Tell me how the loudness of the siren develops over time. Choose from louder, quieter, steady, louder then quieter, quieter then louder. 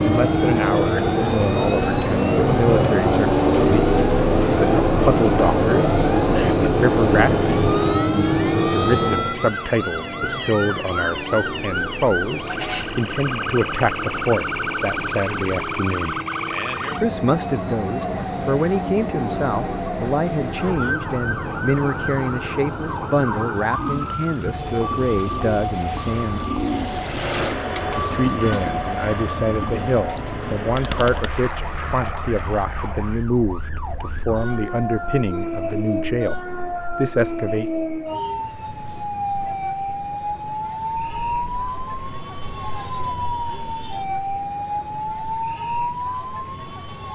steady.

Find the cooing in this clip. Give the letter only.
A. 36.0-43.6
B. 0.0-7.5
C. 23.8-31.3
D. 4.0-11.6
C.